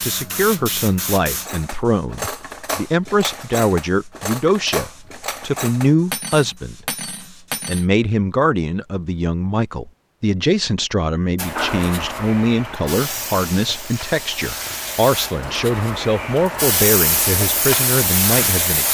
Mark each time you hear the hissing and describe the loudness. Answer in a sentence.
The hissing can be heard from 0.0 to 7.7 s, getting quieter; and from 11.3 to 18.9 s, getting louder.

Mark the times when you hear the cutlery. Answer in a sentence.
You can hear the cutlery from 1.2 to 7.8 s.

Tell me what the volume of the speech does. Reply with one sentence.
The volume of the speech stays about the same.